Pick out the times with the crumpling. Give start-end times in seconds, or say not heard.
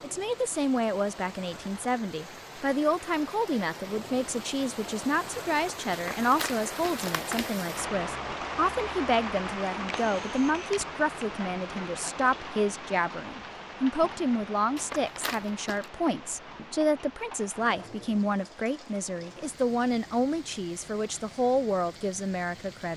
5.9-7.5, 14.8-15.8.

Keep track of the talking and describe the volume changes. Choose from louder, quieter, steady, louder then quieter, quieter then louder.
steady.